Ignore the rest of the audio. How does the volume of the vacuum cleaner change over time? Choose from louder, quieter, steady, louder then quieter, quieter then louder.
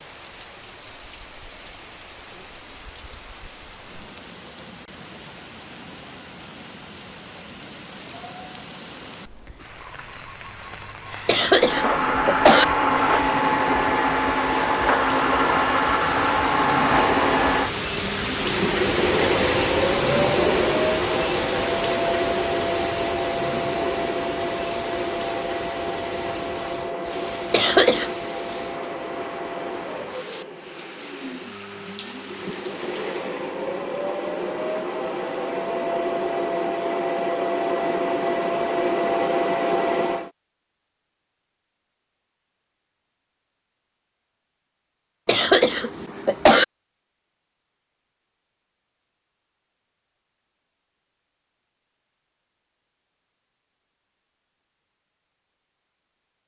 quieter then louder.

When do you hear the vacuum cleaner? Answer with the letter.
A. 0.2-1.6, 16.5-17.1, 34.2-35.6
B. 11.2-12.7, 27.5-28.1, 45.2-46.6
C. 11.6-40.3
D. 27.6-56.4
C.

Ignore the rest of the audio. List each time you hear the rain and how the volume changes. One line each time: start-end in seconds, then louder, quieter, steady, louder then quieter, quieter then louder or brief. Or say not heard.
0.0-33.4 louder then quieter.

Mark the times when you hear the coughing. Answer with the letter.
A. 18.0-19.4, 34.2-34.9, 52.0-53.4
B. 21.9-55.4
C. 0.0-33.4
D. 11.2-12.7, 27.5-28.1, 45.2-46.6
D.